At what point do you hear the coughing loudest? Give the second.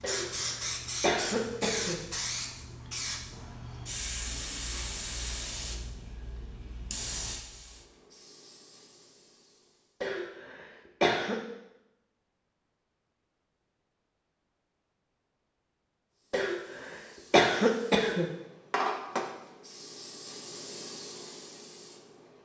18 s.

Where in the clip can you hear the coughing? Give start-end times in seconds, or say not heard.
0.0-2.0, 10.0-11.4, 16.3-18.3.